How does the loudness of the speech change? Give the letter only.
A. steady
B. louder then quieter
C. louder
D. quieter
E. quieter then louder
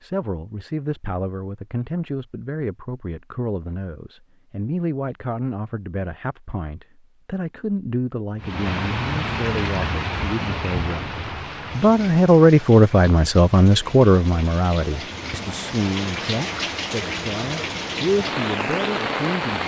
B.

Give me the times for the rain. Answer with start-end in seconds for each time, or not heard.
8.3-19.6.